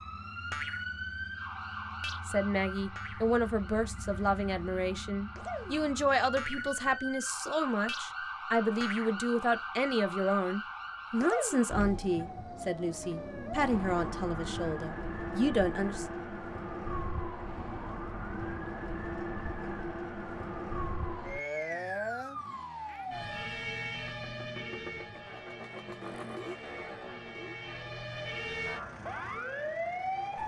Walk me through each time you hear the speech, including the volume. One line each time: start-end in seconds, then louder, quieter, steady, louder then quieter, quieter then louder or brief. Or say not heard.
2.2-16.1 steady.